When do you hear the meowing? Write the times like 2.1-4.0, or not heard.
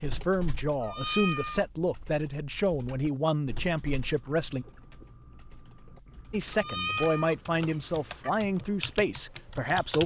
0.8-1.6, 6.5-8.3.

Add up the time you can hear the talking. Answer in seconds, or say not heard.
8 s.